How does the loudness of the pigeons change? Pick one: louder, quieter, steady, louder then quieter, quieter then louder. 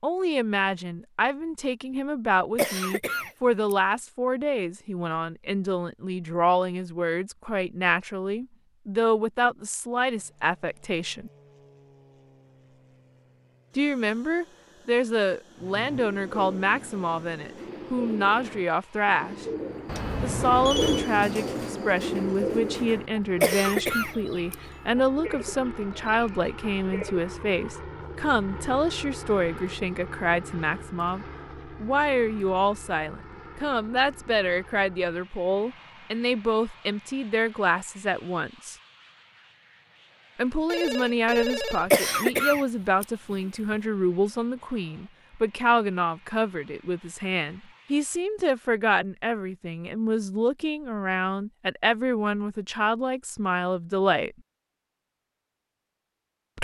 louder then quieter.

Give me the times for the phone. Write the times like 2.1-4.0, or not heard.
19.9-21.1, 40.6-41.9.